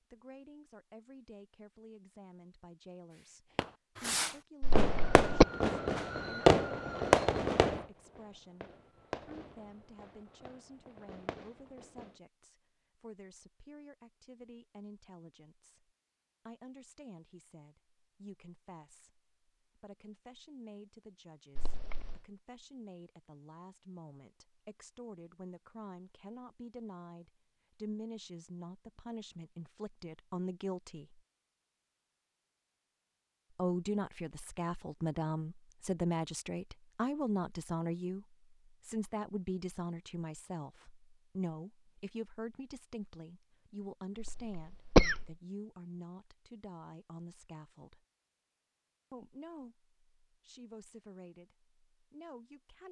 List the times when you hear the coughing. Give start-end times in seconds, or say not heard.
4.6-5.5, 21.6-22.2, 44.2-45.2.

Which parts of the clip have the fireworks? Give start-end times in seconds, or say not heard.
3.5-12.2.